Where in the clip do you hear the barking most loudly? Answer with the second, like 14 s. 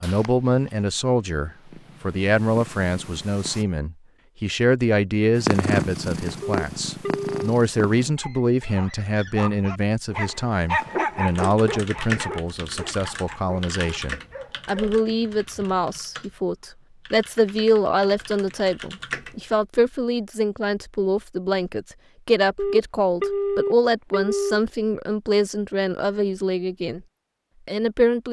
11 s.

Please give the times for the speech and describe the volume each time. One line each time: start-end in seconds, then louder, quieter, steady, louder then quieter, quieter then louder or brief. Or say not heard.
0.0-27.0 steady
27.6-28.2 brief.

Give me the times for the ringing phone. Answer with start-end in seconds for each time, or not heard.
6.4-7.5, 22.6-24.6.